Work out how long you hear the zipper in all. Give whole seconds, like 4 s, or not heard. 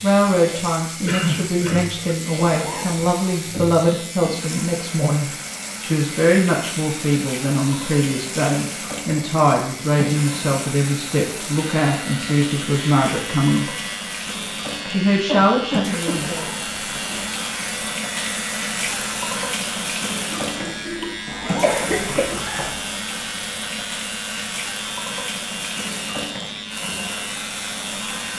3 s.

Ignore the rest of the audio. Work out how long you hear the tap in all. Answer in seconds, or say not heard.
28 s.